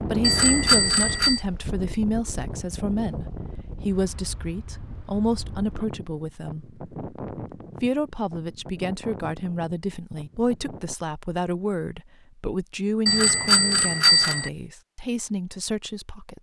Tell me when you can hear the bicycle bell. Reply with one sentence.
You can hear the bicycle bell from 0.2 to 1.4 s and from 13.1 to 14.5 s.